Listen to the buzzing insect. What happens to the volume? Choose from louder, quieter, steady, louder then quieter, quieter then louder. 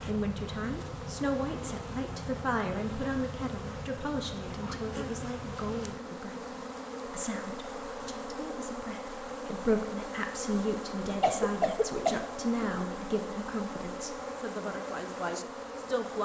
steady.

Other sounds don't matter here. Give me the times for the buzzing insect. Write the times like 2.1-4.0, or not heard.
0.0-16.2.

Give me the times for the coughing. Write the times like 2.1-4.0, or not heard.
11.2-12.8.